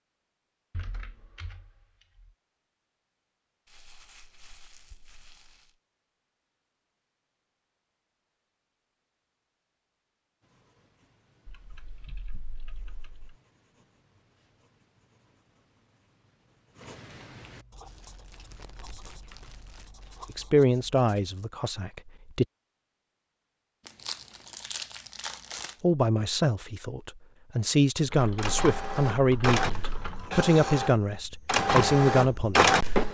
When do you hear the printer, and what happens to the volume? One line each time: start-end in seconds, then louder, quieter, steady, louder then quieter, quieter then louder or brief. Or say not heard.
28.1-33.0 louder.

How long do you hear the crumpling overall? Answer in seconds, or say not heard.
7 s.